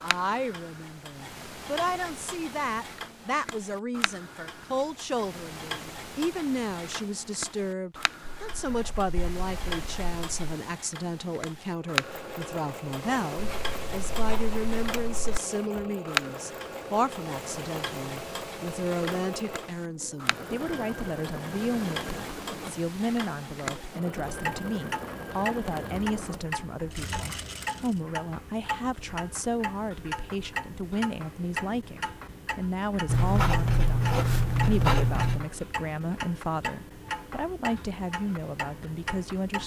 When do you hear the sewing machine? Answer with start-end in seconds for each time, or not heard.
11.7-28.0.